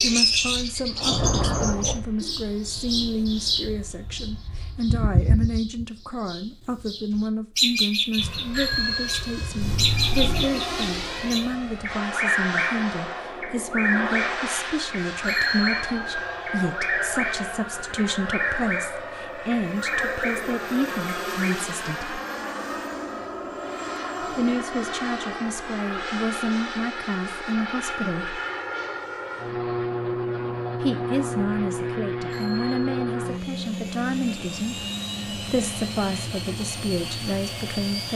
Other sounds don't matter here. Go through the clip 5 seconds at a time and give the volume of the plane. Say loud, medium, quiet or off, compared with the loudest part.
quiet, medium, loud, loud, loud, loud, loud, loud.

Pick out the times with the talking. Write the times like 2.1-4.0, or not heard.
0.0-22.2, 24.4-28.4, 30.8-38.1.